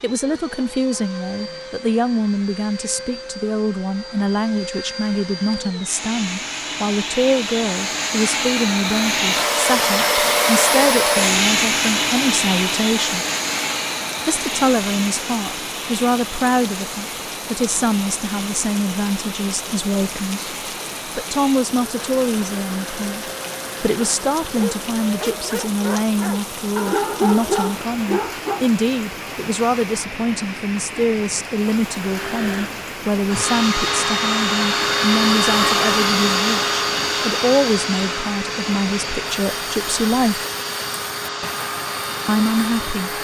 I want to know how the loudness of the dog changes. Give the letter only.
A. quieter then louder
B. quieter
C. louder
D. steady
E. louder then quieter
E.